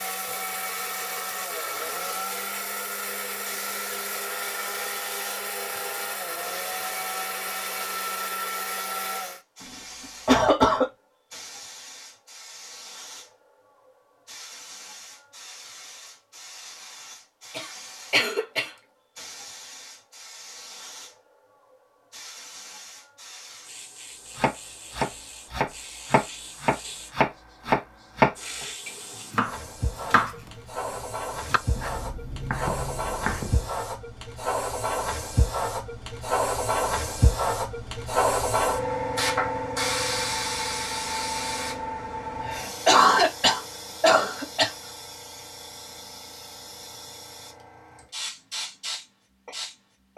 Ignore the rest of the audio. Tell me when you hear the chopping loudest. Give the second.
28 s.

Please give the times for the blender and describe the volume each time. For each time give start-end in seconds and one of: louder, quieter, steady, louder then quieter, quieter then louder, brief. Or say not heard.
0.0-9.4 steady.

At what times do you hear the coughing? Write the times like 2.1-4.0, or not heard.
10.2-10.9, 17.5-18.7, 42.5-44.7.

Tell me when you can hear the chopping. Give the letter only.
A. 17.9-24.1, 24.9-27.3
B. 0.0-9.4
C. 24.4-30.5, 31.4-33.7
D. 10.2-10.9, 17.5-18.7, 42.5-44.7
C.